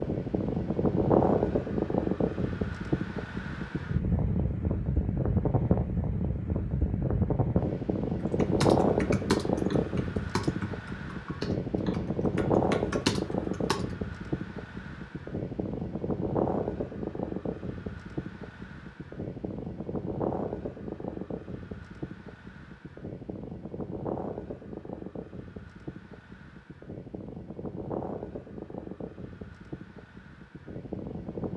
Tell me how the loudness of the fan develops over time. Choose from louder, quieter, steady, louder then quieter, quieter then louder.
quieter.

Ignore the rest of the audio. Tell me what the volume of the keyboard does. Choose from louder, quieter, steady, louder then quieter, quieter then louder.
quieter then louder.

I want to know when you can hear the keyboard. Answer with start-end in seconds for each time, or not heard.
8.2-13.9.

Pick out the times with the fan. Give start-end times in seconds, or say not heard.
0.0-31.5.